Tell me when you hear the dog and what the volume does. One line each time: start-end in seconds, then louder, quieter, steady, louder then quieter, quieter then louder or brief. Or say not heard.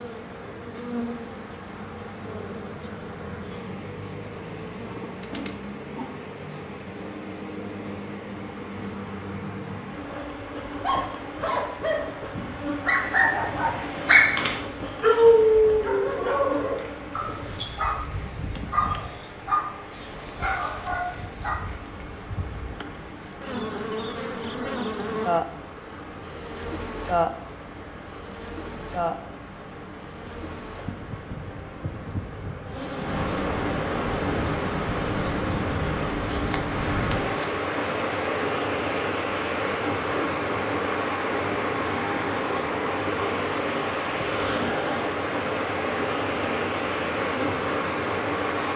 10.8-21.6 louder then quieter.